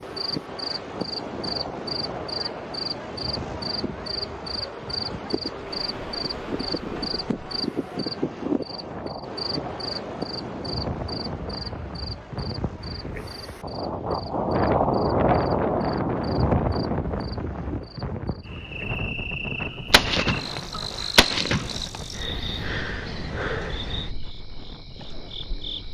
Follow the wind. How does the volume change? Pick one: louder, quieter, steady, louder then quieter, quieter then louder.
louder then quieter.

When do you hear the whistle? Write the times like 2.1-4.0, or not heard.
not heard.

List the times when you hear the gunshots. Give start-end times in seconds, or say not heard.
19.9-22.2.